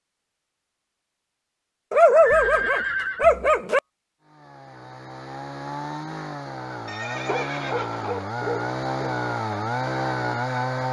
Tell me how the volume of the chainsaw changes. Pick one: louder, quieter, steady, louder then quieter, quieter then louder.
louder.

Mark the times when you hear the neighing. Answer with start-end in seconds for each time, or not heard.
2.2-3.2, 6.8-8.2.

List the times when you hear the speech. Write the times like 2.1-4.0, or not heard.
not heard.